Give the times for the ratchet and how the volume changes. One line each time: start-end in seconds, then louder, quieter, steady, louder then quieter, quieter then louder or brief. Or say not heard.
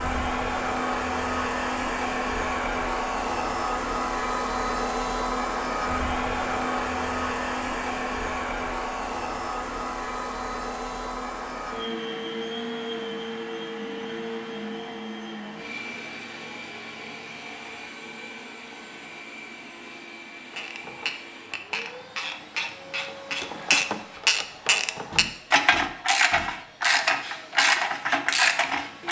20.5-29.0 louder.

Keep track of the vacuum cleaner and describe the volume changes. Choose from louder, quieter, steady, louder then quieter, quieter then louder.
quieter.